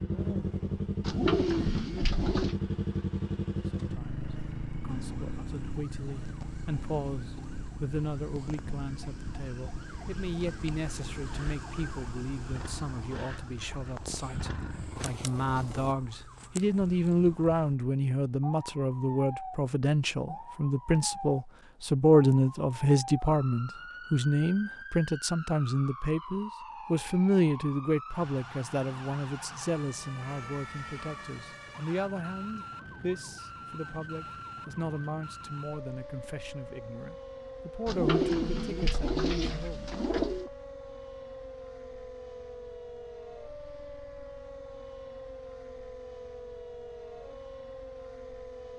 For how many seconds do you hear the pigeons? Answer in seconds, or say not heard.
4 s.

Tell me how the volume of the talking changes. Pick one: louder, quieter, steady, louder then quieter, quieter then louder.
louder then quieter.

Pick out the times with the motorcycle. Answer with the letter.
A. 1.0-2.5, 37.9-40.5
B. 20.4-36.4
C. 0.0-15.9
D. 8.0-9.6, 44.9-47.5
C.